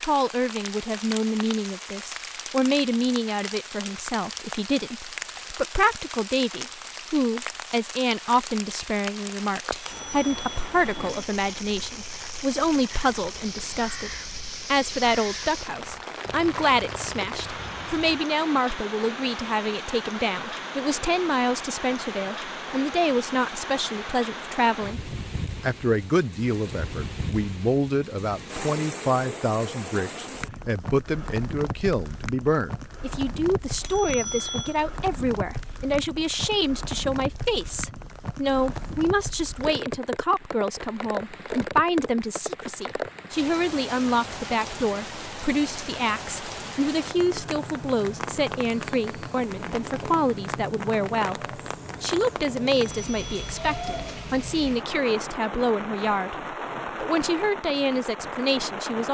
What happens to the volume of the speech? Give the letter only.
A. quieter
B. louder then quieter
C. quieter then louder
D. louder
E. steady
E.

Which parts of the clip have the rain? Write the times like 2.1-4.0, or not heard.
0.0-59.0.